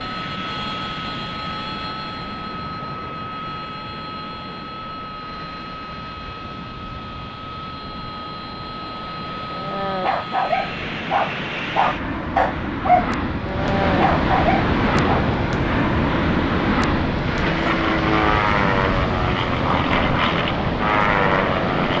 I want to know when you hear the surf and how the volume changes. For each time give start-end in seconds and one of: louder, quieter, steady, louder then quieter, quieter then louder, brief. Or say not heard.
0.0-21.9 louder.